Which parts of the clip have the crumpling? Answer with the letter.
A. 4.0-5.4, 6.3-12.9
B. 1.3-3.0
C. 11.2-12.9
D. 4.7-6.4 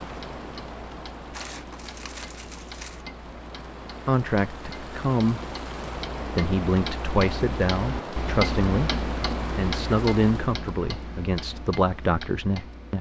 B.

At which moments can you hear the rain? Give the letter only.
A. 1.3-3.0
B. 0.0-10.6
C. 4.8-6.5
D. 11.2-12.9
B.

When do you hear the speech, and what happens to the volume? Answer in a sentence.
The speech can be heard briefly from 4.0 to 5.4 s; and from 6.3 to 12.9 s, at a steady volume.